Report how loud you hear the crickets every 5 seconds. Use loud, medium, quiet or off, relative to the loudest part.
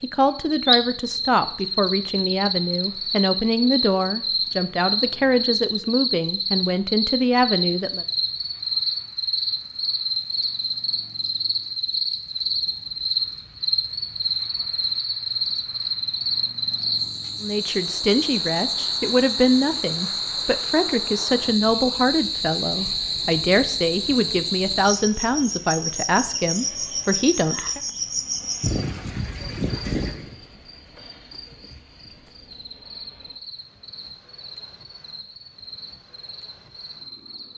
loud, loud, loud, loud, loud, loud, quiet, quiet.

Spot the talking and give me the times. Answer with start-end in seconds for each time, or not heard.
0.0-8.1, 17.4-27.8.